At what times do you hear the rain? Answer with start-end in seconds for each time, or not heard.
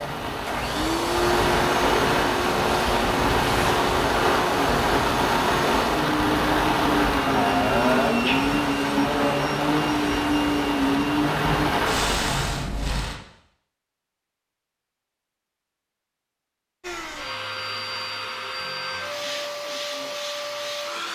0.0-13.2.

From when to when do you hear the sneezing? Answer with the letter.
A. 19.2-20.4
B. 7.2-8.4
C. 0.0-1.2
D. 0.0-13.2
B.